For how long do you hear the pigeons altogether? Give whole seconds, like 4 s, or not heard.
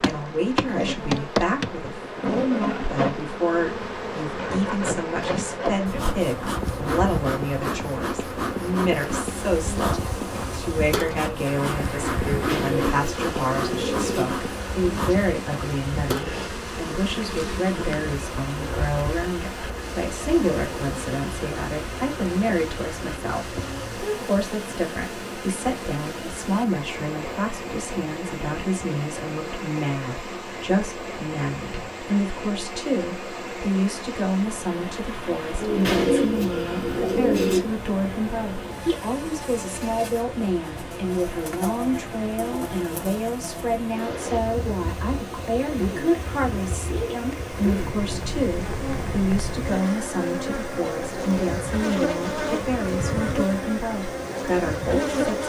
4 s.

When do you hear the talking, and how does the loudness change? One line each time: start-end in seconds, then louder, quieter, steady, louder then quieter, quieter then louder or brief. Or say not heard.
0.0-55.4 steady.